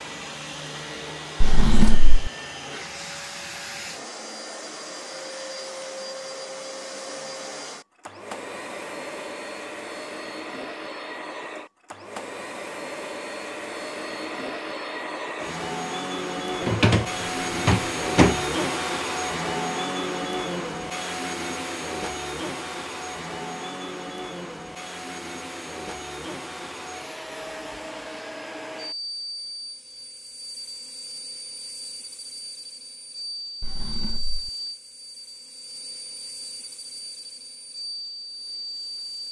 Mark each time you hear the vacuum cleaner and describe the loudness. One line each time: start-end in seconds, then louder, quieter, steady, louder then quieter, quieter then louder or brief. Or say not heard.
0.0-39.2 louder then quieter.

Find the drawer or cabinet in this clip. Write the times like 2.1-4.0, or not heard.
1.4-2.3, 16.6-17.1, 17.6-18.4, 33.6-34.5.